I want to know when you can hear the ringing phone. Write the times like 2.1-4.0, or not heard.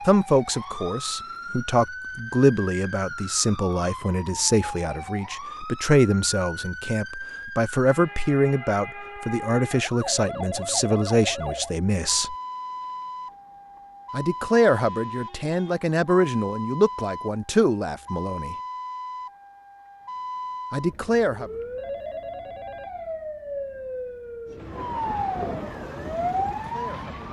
10.0-11.8, 21.8-22.9.